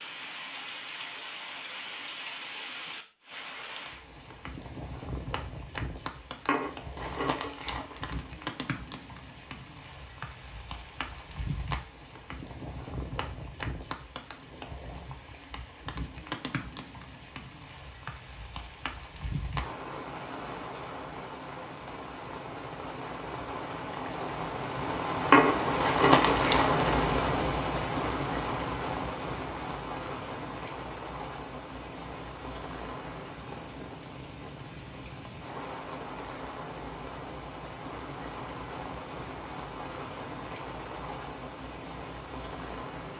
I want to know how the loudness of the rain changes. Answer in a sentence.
The loudness of the rain goes up, then down.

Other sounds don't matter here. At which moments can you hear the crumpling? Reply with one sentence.
You can hear the crumpling from 6.5 to 8.3 s and from 25.3 to 27.1 s.